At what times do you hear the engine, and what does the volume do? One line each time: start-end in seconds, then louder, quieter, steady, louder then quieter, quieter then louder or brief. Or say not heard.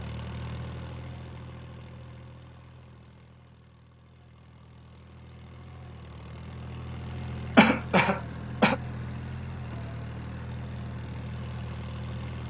0.0-12.4 quieter then louder.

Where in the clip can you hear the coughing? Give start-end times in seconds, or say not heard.
7.5-8.8.